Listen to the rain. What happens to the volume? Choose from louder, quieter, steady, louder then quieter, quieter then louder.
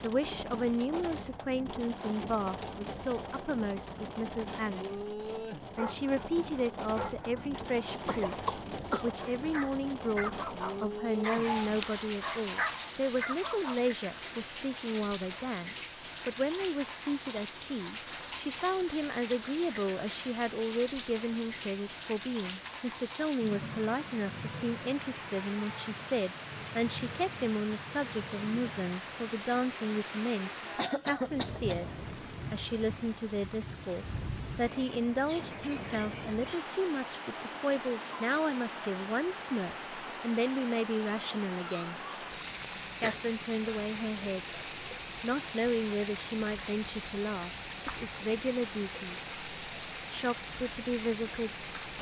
steady.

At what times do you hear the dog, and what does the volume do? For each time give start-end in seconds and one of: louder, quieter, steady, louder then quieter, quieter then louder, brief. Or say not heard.
5.8-13.9 quieter then louder.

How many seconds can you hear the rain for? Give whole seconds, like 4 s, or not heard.
52 s.